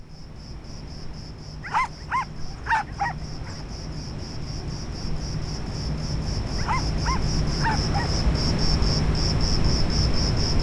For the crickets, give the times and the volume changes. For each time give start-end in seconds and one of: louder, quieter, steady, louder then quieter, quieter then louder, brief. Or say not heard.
0.0-10.5 louder.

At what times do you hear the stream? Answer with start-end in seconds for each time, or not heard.
not heard.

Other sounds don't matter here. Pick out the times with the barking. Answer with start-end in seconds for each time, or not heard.
1.6-3.5, 6.5-8.1.